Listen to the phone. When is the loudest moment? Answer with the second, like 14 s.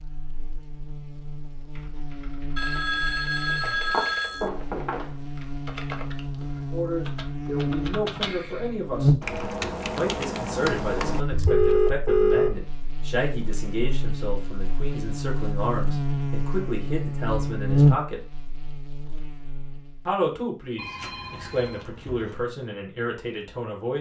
12 s.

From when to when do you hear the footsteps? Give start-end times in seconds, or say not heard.
3.6-5.2.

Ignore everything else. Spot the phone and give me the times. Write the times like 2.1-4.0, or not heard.
2.5-4.5, 11.4-12.6, 20.8-22.4.